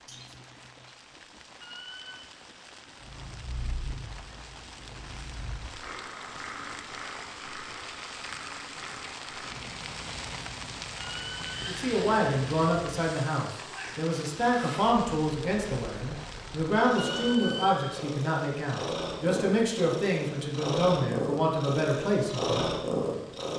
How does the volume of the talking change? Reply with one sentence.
The loudness of the talking stays about the same.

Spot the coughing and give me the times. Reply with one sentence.
The coughing can be heard from 0.1 to 1.0 s.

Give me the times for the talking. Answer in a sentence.
You can hear the talking from 11.6 to 22.6 s.